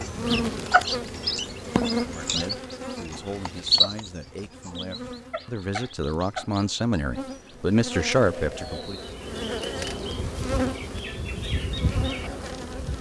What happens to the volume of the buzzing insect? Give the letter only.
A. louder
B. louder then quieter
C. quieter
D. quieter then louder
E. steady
D.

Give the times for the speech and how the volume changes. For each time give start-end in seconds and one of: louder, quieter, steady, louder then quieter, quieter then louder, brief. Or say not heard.
1.9-9.0 louder.